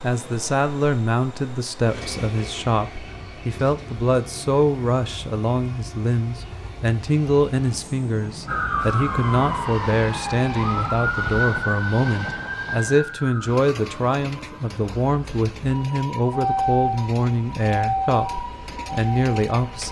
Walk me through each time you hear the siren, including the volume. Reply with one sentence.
You can hear the siren from 8.4 to 19.8 s, getting quieter then louder.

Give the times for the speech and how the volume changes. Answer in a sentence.
You can hear the speech from 0.0 to 19.8 s, at a steady volume.